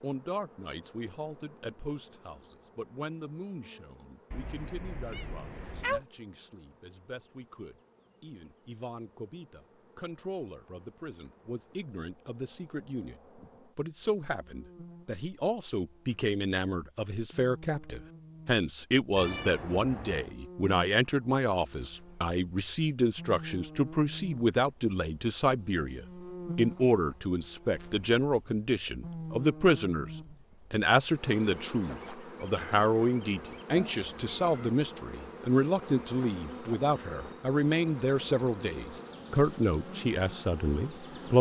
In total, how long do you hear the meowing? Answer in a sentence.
You can hear the meowing for 4 seconds altogether.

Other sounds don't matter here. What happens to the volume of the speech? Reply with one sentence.
The volume of the speech goes up.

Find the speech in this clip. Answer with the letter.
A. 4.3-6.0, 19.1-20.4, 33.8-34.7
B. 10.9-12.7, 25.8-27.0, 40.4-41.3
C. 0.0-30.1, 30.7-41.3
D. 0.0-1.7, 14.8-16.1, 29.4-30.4
C.